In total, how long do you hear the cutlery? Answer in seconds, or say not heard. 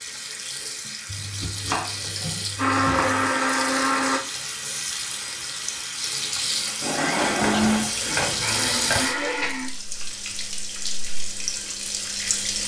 not heard.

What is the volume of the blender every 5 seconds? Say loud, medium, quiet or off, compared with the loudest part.
loud, loud, off.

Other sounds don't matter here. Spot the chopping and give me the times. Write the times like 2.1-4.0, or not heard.
1.1-3.3, 7.3-9.0.